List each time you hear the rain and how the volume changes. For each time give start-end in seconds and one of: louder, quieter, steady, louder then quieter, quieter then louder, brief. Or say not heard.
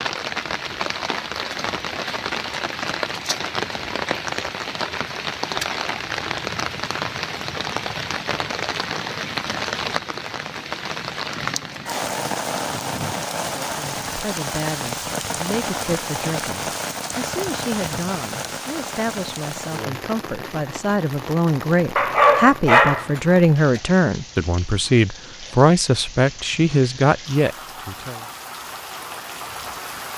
0.0-30.1 quieter.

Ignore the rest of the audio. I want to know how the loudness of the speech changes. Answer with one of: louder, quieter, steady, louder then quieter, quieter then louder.
louder.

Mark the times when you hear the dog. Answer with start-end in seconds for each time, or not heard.
21.9-23.8.